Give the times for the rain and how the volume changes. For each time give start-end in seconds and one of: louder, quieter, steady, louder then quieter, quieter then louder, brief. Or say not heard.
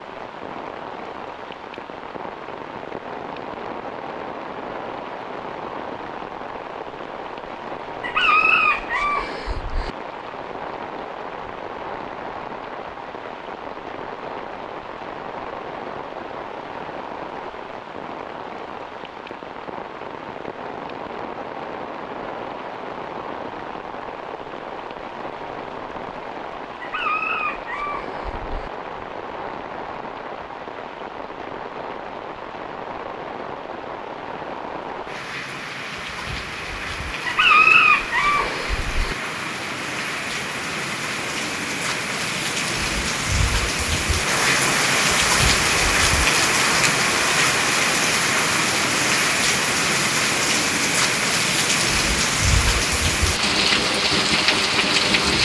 0.0-55.4 louder.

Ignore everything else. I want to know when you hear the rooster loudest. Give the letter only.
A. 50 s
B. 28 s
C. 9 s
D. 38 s
D.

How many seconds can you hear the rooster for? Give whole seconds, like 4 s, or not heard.
6 s.